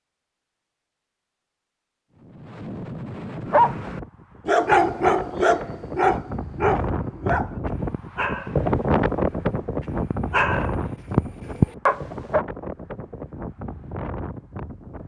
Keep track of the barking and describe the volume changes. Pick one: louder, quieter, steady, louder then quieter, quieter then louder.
quieter then louder.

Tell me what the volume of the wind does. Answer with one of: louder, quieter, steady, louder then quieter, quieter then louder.
louder then quieter.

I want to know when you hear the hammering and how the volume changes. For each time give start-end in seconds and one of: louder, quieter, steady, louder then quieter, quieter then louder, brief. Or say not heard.
not heard.